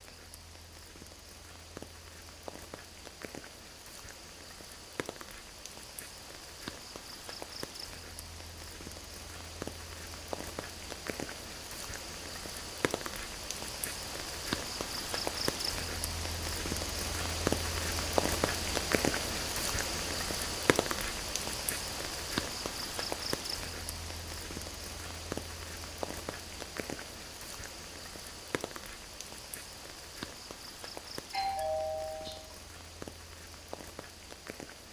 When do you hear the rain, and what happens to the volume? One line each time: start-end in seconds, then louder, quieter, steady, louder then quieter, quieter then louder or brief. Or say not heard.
0.0-34.8 louder then quieter.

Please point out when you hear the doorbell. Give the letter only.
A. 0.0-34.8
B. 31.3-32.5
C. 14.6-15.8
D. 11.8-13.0
B.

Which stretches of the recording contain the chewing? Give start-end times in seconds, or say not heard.
not heard.